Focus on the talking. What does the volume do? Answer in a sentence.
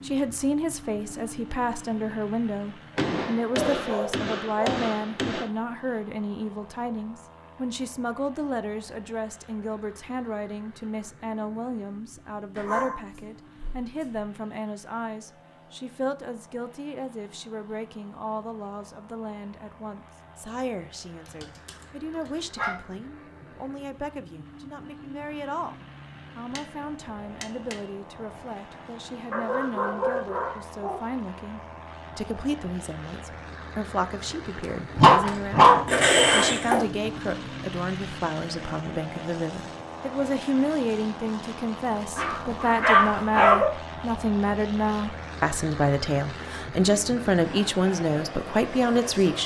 The volume of the talking goes down, then up.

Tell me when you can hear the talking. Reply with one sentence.
The talking can be heard from 0.0 to 49.4 s.